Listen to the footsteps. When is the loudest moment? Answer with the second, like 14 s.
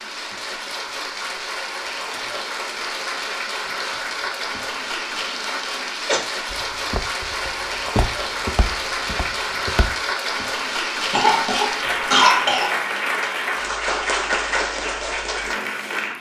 8 s.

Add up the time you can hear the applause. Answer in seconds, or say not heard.
16 s.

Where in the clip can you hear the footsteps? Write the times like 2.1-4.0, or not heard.
6.5-9.9.